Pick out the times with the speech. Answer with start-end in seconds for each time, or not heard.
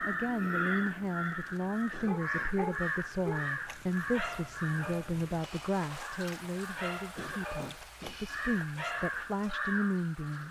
0.1-10.4.